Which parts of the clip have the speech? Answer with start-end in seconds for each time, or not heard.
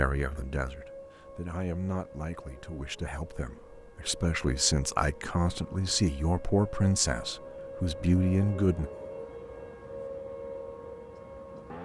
0.0-8.9.